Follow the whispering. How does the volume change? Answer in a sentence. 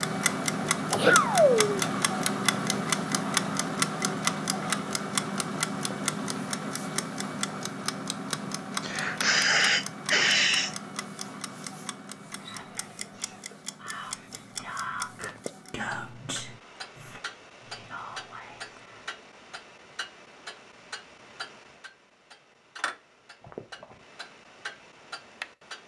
The loudness of the whispering goes up, then down.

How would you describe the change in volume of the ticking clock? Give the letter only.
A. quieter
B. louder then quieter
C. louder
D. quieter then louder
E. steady
A.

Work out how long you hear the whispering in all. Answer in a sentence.
The whispering can be heard for 7 seconds in total.